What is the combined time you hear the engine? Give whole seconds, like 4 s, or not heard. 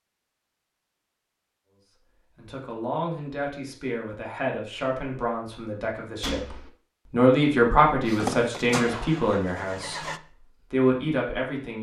2 s.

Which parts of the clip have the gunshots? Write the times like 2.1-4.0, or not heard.
6.2-6.7.